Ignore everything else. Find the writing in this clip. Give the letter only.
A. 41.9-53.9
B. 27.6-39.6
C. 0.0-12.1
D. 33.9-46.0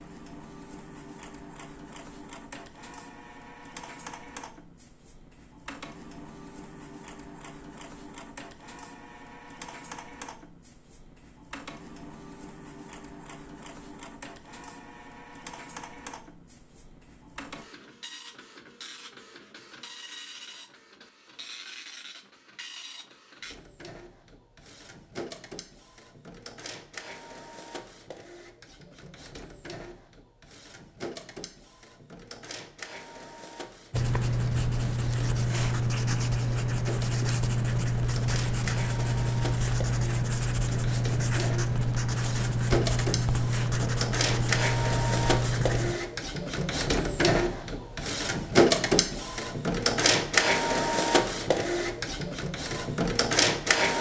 D.